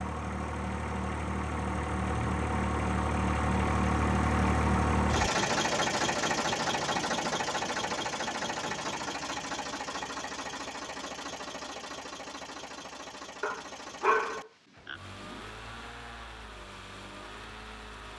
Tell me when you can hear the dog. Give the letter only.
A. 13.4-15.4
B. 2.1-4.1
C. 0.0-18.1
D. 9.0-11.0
A.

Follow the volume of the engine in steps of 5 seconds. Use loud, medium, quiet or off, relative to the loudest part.
loud, loud, medium, quiet.